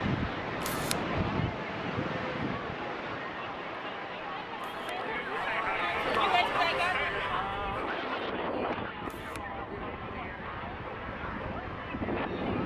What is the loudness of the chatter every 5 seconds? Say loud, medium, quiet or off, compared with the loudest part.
medium, loud, medium.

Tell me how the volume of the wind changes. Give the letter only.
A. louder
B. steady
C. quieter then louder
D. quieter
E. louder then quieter
C.